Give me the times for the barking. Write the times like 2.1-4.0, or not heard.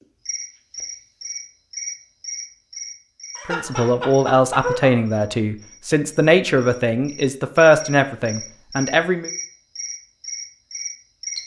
3.4-5.0.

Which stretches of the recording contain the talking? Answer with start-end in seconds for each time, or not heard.
3.5-9.3.